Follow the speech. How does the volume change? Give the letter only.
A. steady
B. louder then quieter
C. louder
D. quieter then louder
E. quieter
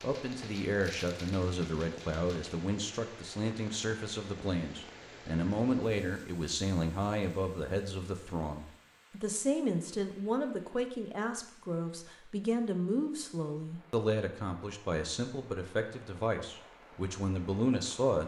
A.